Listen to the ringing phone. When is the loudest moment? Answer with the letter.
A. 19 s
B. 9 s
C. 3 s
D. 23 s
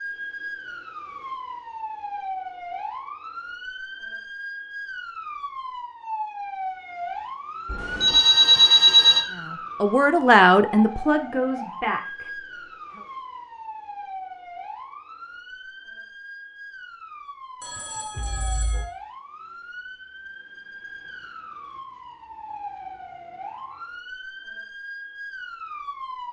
B.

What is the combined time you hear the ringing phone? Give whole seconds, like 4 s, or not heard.
3 s.